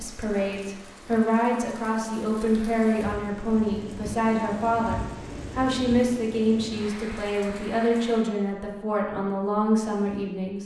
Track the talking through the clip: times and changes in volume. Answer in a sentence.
You can hear the talking from 0.0 to 10.6 s, at a steady volume.